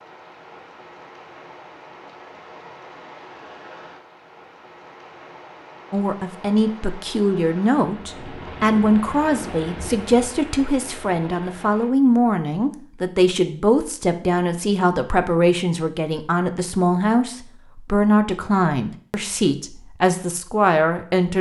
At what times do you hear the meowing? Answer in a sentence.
You can't hear the meowing here.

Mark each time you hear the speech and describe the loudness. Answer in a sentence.
The speech can be heard from 5.9 to 21.3 s, at a steady volume.